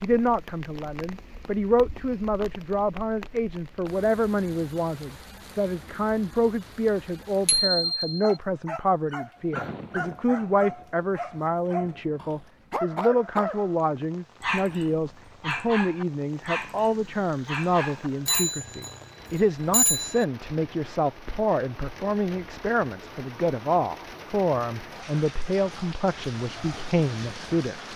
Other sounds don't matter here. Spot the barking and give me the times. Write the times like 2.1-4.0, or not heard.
7.8-18.6.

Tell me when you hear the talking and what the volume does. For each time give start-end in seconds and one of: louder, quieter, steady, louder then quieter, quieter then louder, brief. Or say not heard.
0.0-27.9 steady.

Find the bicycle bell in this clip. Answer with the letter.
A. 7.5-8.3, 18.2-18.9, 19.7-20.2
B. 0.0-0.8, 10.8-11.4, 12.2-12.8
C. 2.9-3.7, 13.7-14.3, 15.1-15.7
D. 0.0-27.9
A.